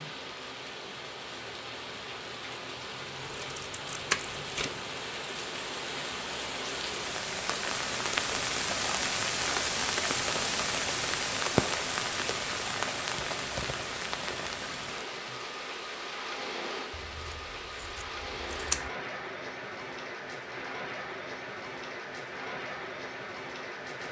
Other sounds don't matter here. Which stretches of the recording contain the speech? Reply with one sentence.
You can't hear the speech here.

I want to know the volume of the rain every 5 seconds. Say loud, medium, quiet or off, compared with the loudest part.
medium, loud, loud, medium, medium.